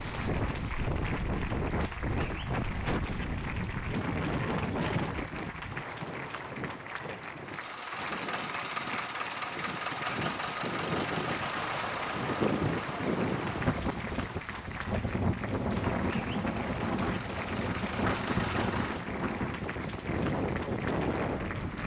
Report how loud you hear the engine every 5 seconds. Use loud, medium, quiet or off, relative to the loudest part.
off, loud, loud, medium, off.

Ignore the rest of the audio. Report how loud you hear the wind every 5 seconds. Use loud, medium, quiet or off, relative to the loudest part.
loud, medium, loud, loud, loud.